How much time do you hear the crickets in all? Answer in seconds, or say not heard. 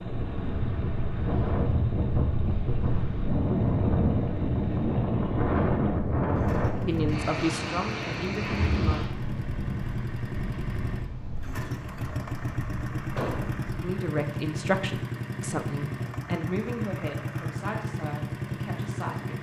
not heard.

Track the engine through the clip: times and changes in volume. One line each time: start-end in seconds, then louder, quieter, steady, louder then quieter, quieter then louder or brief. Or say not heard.
0.0-19.3 louder.